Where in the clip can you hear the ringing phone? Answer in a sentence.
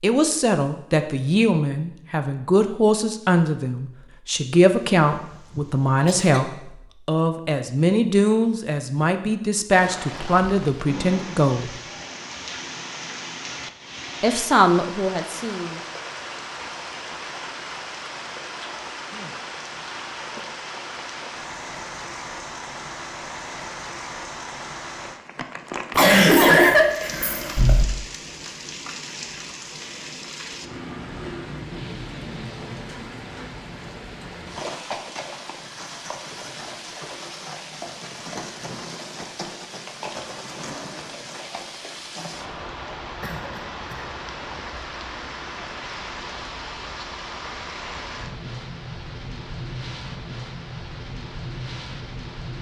The ringing phone can't be heard in this clip.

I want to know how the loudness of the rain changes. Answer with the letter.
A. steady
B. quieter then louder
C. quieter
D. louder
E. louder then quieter
A.